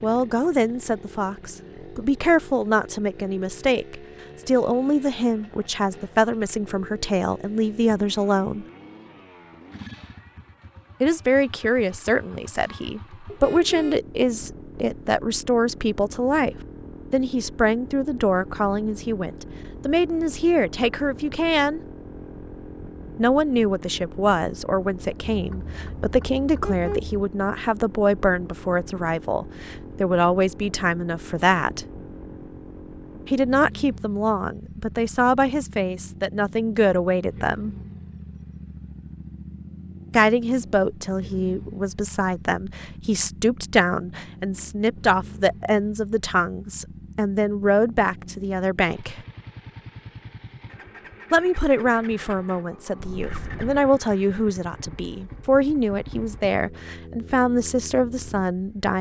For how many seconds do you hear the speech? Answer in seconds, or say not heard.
49 s.